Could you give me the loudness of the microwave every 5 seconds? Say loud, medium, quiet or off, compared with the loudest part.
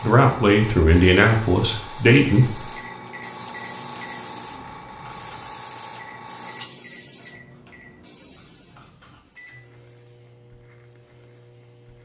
loud, medium, medium.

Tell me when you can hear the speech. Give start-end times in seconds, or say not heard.
0.0-2.7.